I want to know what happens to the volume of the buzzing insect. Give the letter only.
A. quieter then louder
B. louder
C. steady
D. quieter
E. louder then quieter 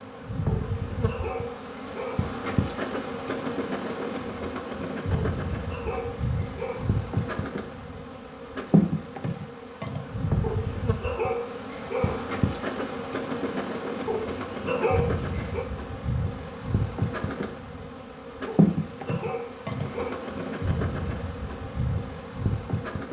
C.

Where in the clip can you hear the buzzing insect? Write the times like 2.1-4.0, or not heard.
0.0-23.0.